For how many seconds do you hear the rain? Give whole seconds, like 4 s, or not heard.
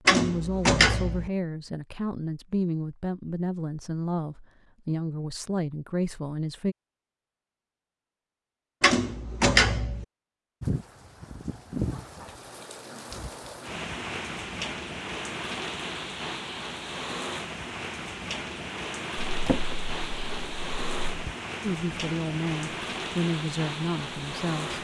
14 s.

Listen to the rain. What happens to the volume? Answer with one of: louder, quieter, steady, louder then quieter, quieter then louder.
steady.